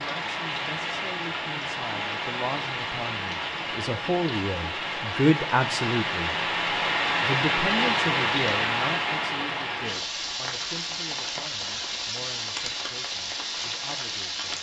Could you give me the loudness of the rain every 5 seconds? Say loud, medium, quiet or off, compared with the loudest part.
medium, loud, medium.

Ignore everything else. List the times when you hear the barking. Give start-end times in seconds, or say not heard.
not heard.